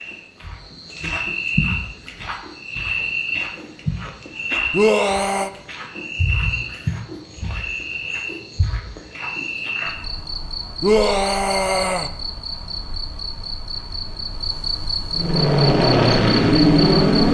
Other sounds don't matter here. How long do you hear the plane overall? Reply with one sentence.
You can hear the plane for 2 seconds altogether.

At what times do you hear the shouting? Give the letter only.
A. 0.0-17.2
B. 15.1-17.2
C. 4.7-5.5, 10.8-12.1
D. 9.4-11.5
C.